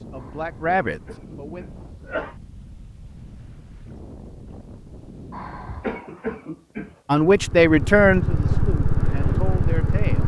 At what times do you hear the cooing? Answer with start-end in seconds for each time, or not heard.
not heard.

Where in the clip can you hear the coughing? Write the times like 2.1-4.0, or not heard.
0.1-2.4, 5.3-7.0.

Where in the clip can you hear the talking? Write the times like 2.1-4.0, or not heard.
0.0-1.6, 7.0-10.2.